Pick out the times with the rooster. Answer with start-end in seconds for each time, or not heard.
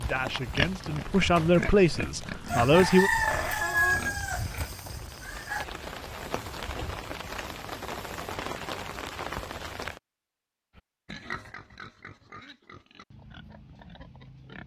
2.5-5.7.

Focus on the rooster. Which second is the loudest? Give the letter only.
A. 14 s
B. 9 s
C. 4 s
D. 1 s
C.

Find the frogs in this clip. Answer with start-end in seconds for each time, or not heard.
not heard.